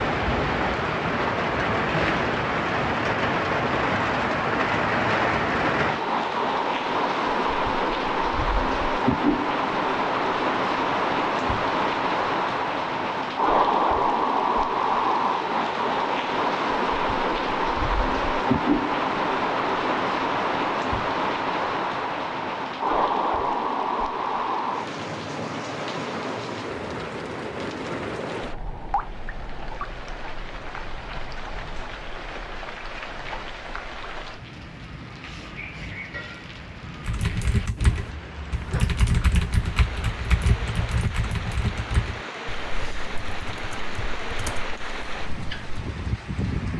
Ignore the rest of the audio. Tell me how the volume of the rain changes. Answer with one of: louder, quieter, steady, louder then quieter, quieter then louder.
quieter.